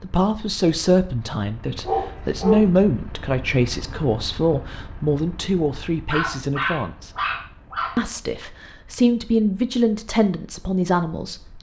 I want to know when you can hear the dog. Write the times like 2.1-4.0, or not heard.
1.9-2.7, 6.1-8.0.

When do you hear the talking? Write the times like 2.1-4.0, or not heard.
0.0-7.2, 8.0-11.5.